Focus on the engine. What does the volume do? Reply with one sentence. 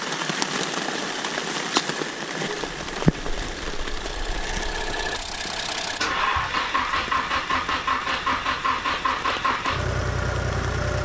The loudness of the engine goes up.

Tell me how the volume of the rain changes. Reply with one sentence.
The volume of the rain goes down.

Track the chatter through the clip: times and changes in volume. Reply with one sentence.
You can't hear the chatter here.